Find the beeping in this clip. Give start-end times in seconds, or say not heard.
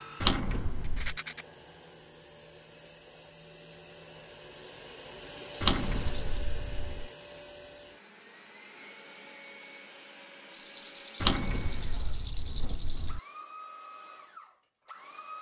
not heard.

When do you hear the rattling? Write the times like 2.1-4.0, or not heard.
0.8-1.4, 5.6-6.3, 10.5-13.2.